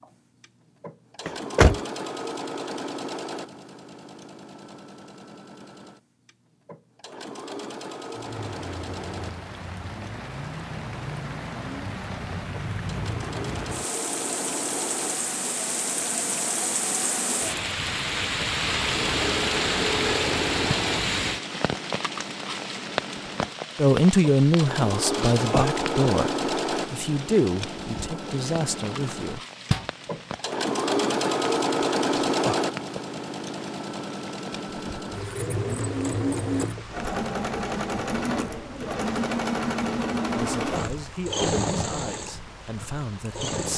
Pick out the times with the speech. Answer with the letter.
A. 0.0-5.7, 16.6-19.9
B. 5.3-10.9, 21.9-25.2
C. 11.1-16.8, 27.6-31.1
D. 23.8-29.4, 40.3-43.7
D.